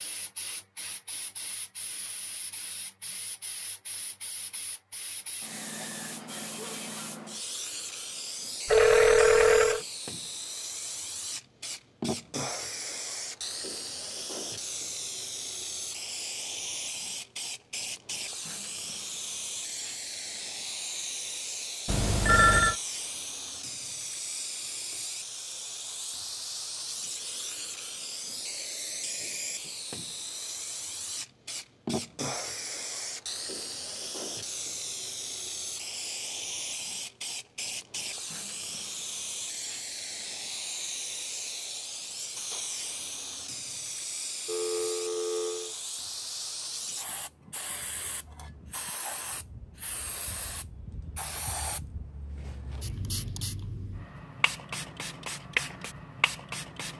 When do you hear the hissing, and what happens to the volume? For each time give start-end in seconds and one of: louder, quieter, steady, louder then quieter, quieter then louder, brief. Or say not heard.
0.0-56.9 steady.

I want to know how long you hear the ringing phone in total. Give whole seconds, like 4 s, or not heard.
3 s.